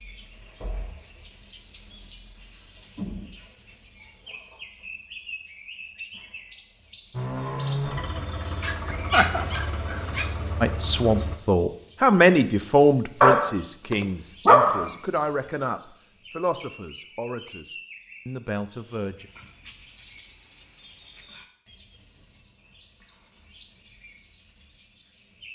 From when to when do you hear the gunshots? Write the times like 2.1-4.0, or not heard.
not heard.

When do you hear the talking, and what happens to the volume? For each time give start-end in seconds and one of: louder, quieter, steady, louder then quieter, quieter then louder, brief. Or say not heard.
10.6-19.3 quieter.